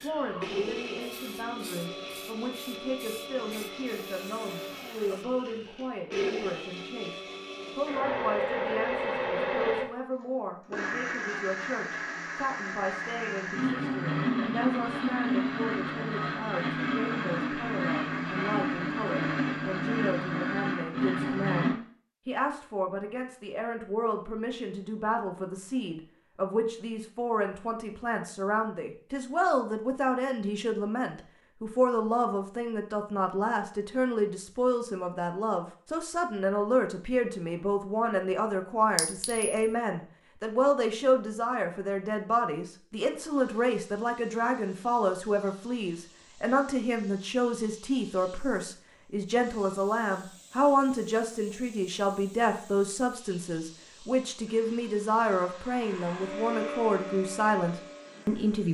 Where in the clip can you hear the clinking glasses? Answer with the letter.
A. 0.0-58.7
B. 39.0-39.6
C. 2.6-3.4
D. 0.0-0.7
B.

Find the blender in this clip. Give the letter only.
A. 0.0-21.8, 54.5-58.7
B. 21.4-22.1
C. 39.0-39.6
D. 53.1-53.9
A.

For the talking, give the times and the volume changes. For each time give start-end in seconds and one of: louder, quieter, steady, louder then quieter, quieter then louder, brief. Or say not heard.
0.0-58.7 louder.